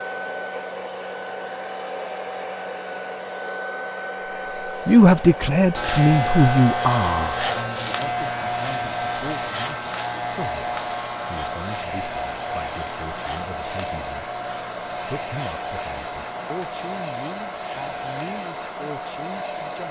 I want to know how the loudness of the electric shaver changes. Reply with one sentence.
The volume of the electric shaver goes down.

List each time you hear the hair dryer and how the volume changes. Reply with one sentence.
The hair dryer can be heard from 0.0 to 19.8 s, at a steady volume.